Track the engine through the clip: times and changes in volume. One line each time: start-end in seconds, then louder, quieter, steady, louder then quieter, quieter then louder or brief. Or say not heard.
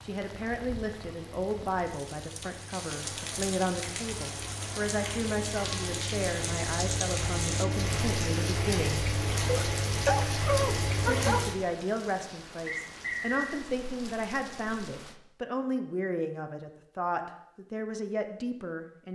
0.0-11.6 louder.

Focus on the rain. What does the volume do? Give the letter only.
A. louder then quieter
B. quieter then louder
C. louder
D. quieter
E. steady
A.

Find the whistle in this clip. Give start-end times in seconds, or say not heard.
12.7-13.6.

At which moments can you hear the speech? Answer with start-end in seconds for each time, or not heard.
0.0-9.1, 11.0-19.1.